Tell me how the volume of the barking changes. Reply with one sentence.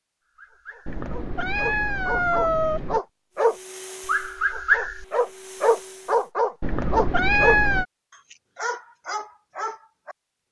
The loudness of the barking goes up, then down.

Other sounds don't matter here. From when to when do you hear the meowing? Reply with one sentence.
You can hear the meowing from 0.8 to 3.0 s and from 6.6 to 7.8 s.